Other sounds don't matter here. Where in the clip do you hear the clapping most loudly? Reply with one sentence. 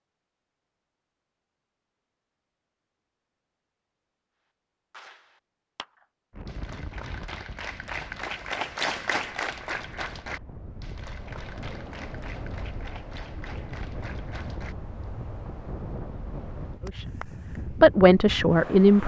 The loudest moment of the clapping is at 9 seconds.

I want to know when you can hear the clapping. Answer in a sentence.
The clapping can be heard from 4.9 to 15.1 s.